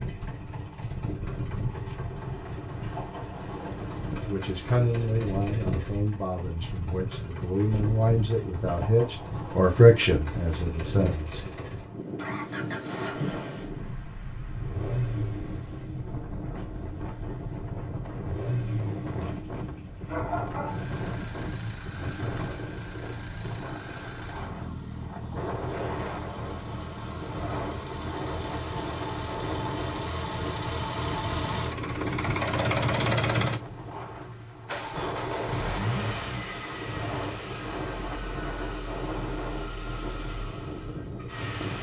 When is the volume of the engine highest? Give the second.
33 s.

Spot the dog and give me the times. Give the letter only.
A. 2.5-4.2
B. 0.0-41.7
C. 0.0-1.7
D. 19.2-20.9
D.